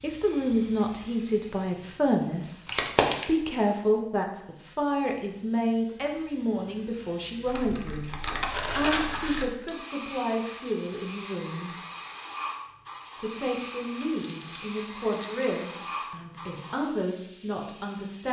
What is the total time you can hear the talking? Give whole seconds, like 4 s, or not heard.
16 s.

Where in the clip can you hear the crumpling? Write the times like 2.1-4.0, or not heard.
2.6-3.2, 7.5-9.4, 14.1-15.4.